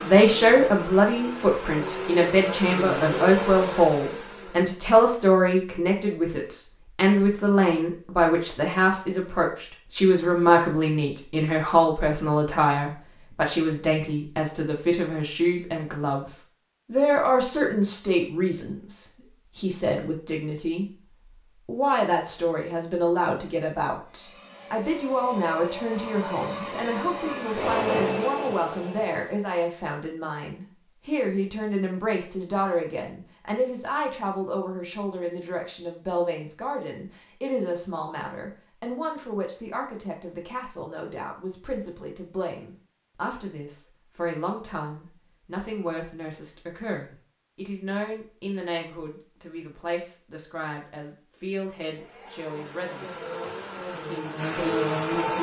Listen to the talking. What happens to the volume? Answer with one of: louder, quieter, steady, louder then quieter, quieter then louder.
quieter.